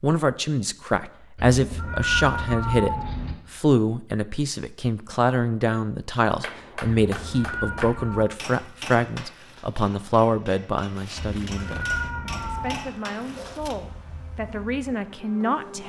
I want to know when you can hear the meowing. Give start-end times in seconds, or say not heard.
1.4-3.4, 7.0-8.2, 11.2-12.9.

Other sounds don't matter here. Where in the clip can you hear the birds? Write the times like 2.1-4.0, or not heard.
not heard.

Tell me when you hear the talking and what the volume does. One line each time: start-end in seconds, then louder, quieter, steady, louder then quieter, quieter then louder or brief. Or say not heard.
0.0-15.8 quieter.